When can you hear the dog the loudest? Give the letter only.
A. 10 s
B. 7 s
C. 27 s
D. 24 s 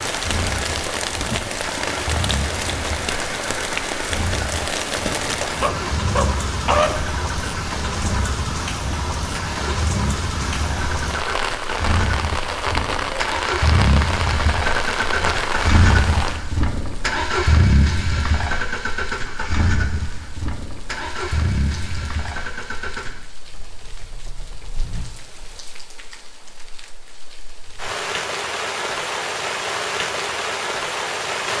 B.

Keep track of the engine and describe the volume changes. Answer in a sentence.
The loudness of the engine goes up, then down.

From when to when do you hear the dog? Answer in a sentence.
The dog can be heard from 5.6 to 7.0 s.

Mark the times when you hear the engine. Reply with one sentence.
You can hear the engine from 0.1 to 25.6 s.